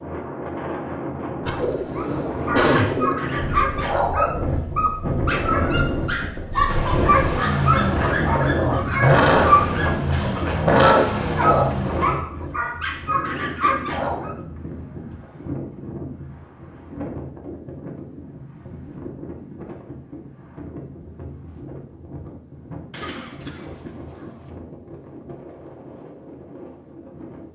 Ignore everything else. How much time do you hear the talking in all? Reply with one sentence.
The talking can't be heard in this clip.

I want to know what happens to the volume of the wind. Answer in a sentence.
The volume of the wind goes down.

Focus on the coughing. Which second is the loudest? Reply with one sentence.
The loudest moment of the coughing is at 3 seconds.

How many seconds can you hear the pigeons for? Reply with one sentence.
You can hear the pigeons for 2 seconds altogether.